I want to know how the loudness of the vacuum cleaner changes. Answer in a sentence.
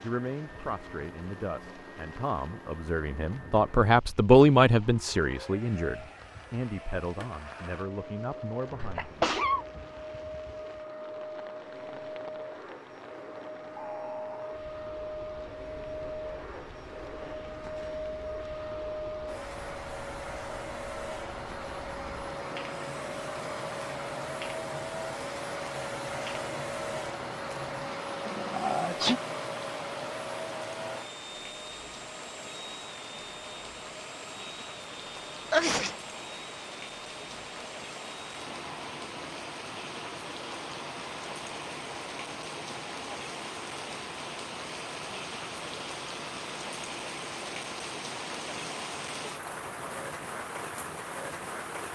The loudness of the vacuum cleaner goes up, then down.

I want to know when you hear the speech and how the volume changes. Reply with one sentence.
You can hear the speech from 0.0 to 9.2 s, getting louder then quieter.